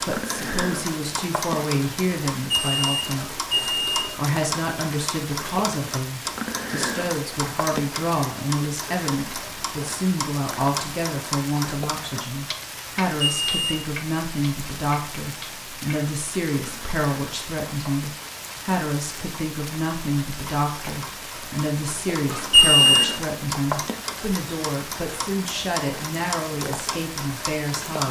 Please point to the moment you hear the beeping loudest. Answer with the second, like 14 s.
23 s.